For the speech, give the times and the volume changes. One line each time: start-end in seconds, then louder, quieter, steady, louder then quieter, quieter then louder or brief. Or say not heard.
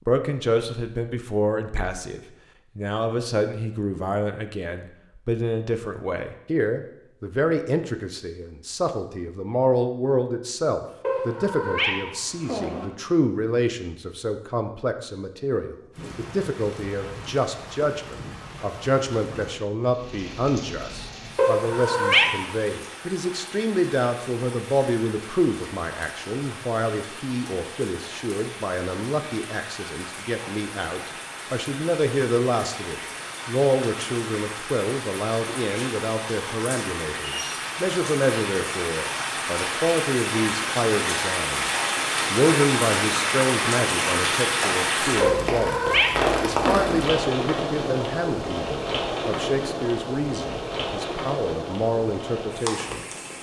0.1-53.0 steady.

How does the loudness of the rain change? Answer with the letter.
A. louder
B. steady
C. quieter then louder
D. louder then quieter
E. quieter
A.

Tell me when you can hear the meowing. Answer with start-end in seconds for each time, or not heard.
11.0-12.8, 21.4-22.4, 45.2-47.0.